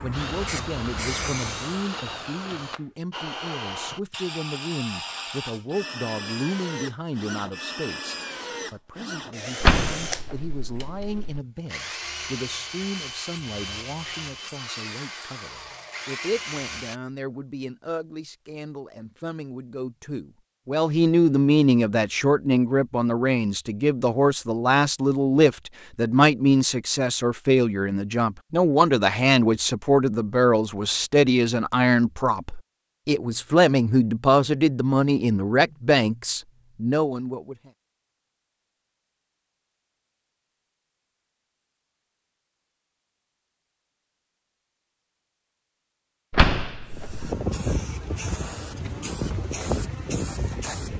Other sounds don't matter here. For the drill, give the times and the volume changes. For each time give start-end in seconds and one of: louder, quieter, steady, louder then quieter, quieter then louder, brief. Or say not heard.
0.0-17.0 steady.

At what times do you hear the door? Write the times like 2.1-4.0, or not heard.
9.6-11.4, 46.3-47.3.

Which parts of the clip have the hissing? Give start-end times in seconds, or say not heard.
0.0-1.9, 46.9-50.9.